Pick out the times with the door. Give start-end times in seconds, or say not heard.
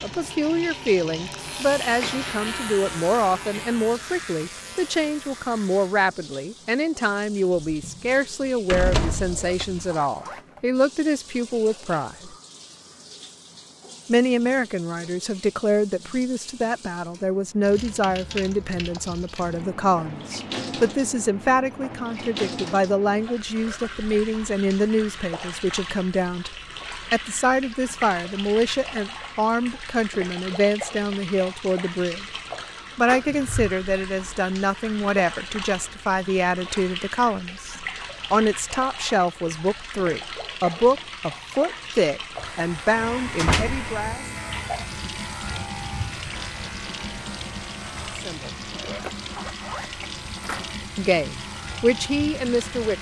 7.6-8.1, 8.7-9.8, 33.0-33.8, 43.3-43.9.